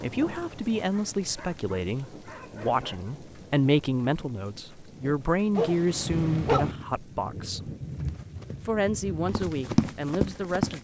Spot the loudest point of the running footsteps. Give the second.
10 s.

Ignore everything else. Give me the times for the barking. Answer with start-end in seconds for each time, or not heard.
0.8-3.1, 5.5-6.8.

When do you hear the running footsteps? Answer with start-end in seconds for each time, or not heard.
7.9-10.7.